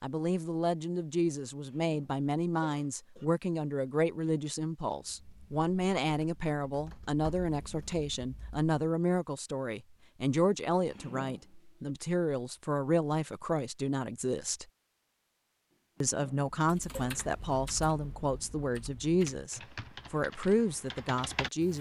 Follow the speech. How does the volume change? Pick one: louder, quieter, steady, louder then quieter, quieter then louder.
steady.